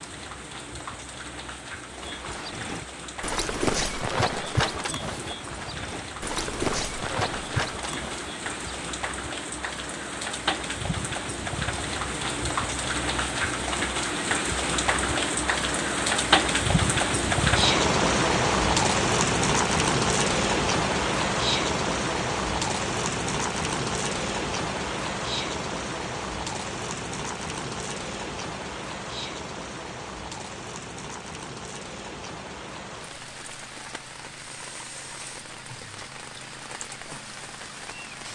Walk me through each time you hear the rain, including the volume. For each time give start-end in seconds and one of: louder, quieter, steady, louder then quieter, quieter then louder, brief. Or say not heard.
0.0-38.3 louder then quieter.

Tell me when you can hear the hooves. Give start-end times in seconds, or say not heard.
1.9-8.8.